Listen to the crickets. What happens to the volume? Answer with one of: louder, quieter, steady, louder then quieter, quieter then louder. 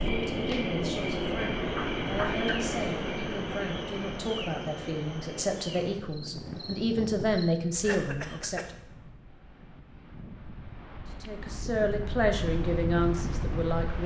quieter.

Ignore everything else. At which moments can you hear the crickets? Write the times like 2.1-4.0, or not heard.
0.0-7.5.